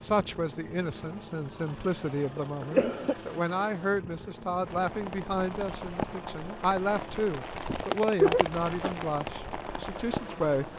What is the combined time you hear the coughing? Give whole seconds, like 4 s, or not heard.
2 s.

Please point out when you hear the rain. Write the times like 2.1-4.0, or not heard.
4.7-10.7.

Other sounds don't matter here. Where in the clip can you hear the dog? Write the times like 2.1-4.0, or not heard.
not heard.